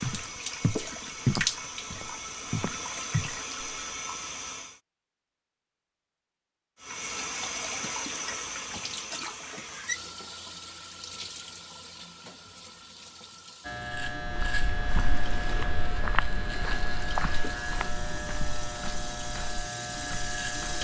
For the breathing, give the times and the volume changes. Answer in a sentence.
The breathing can't be heard in this clip.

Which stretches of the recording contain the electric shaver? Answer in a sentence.
The electric shaver can be heard from 13.6 to 20.7 s.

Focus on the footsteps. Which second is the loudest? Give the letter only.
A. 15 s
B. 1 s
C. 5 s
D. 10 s
B.